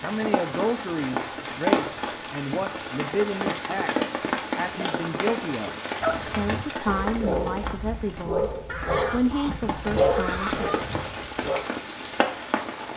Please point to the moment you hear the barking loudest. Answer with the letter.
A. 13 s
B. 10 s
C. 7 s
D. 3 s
B.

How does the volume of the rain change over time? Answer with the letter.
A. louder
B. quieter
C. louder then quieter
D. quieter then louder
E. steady
D.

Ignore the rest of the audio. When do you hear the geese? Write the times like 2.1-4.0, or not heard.
8.7-10.8.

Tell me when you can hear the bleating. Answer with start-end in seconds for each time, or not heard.
not heard.